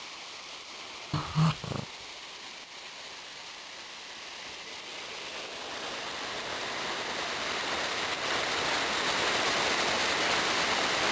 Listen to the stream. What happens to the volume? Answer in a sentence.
The loudness of the stream goes up.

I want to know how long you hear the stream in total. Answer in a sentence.
The stream can be heard for 11 seconds in total.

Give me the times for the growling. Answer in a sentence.
You can hear the growling from 1.1 to 1.9 s.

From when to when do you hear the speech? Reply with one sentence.
You can't hear the speech here.